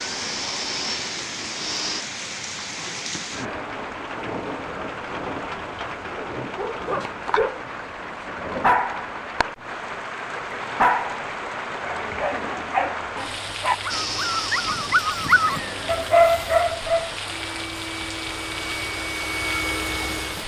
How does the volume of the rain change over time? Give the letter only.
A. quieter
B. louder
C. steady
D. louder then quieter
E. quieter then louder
C.